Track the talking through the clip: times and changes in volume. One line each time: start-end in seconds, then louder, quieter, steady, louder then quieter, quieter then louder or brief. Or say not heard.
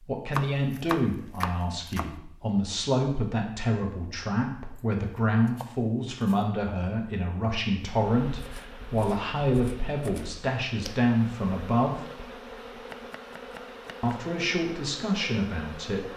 0.1-12.1 steady
14.0-16.1 brief.